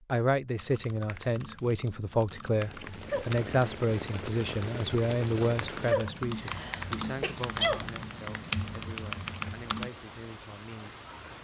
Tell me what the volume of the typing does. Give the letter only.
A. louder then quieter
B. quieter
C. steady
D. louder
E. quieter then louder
D.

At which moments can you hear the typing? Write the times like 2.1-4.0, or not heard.
0.6-9.9.